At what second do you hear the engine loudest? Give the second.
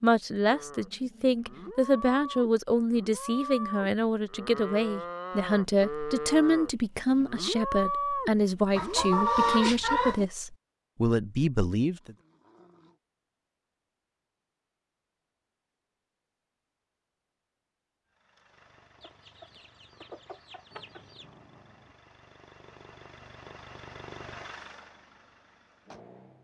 24 s.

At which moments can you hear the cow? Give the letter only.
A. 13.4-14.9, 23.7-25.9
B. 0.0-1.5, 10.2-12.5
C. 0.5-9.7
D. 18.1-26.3
C.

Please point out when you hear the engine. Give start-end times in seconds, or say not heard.
18.1-26.3.